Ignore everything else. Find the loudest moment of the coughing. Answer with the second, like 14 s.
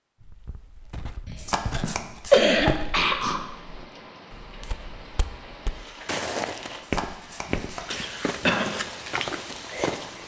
2 s.